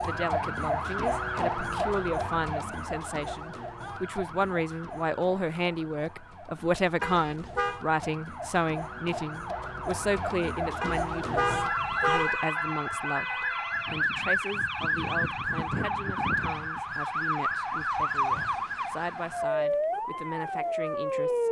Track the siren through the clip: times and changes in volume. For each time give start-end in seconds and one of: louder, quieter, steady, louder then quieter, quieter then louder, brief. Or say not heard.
0.0-21.4 quieter then louder.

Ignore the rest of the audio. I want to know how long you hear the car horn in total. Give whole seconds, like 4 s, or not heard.
2 s.